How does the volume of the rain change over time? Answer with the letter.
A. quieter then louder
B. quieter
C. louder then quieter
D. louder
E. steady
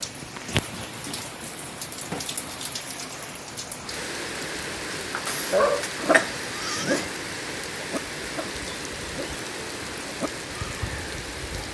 E.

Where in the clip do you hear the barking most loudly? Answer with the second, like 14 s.
6 s.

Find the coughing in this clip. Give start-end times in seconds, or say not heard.
5.2-7.1.